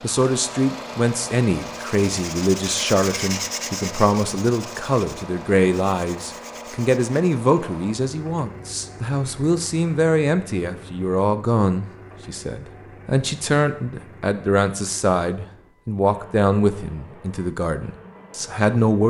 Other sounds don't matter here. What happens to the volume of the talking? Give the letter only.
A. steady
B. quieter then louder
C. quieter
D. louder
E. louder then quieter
A.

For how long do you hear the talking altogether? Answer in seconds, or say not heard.
19 s.